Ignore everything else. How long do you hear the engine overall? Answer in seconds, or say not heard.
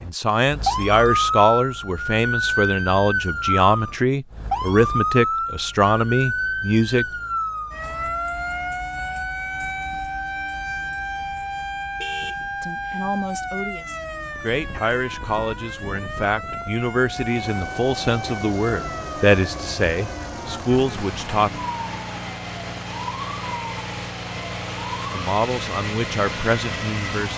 10 s.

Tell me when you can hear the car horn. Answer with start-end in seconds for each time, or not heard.
12.0-13.1.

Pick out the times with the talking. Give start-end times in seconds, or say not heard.
0.0-7.0, 12.6-21.5, 25.1-27.3.